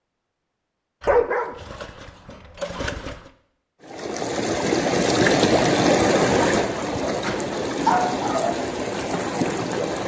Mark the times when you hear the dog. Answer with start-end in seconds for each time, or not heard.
1.0-3.2, 7.0-8.6.